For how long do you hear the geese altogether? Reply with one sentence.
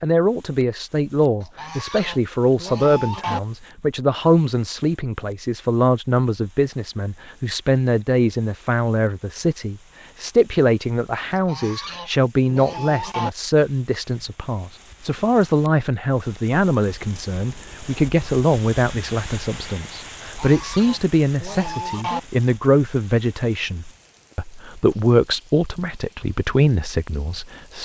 You can hear the geese for 6 seconds altogether.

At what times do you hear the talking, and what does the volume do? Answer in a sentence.
The talking can be heard from 0.0 to 27.8 s, at a steady volume.